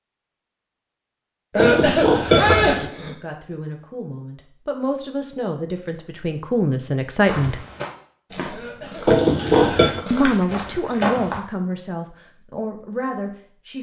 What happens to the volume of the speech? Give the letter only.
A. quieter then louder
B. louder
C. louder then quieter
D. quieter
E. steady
C.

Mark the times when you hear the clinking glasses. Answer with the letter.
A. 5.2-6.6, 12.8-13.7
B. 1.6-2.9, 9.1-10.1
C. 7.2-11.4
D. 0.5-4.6
B.